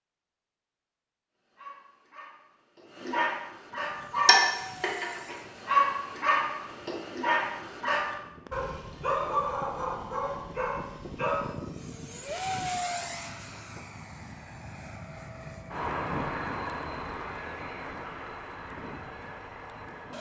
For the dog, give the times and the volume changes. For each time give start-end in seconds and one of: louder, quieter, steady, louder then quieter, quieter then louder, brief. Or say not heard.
1.5-11.6 louder then quieter.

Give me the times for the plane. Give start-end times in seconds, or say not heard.
3.6-20.1.